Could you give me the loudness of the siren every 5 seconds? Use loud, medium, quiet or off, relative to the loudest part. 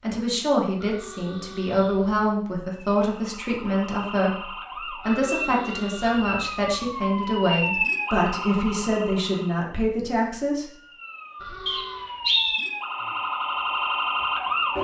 medium, loud, loud.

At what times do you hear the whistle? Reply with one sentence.
The whistle can be heard from 11.7 to 12.7 s.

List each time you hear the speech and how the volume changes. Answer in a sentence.
You can hear the speech from 0.0 to 10.7 s, at a steady volume.